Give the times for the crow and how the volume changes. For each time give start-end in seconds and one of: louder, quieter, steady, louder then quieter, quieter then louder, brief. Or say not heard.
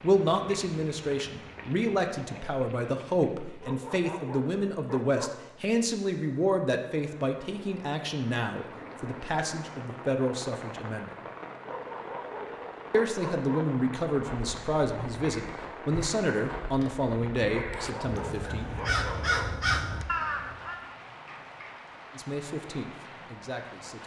14.1-20.8 louder.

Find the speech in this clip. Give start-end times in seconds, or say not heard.
0.0-11.1, 12.9-18.7, 22.1-24.0.